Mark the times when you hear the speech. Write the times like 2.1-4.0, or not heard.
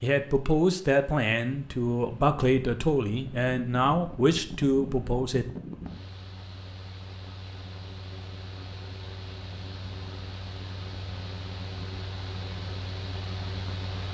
0.0-5.5.